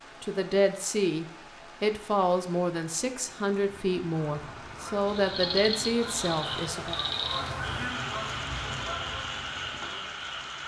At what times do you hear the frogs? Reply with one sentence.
You can hear the frogs from 5.0 to 10.6 s.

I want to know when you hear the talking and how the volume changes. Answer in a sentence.
You can hear the talking from 0.2 to 7.0 s, at a steady volume.